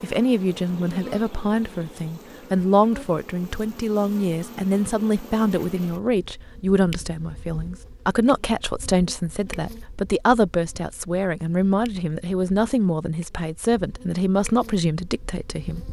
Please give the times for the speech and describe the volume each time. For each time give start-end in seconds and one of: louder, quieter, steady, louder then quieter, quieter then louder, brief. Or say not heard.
0.0-15.8 steady.